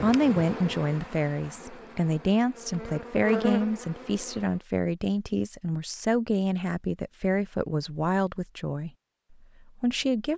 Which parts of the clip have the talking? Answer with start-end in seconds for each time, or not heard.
0.0-8.9, 9.8-10.3.